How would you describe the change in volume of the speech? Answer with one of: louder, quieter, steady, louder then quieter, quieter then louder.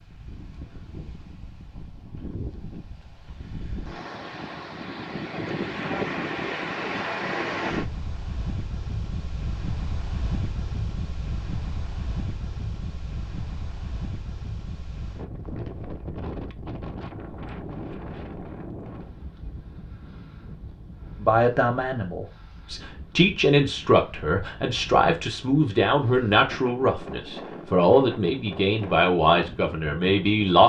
steady.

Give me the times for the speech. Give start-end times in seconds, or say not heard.
21.2-30.6.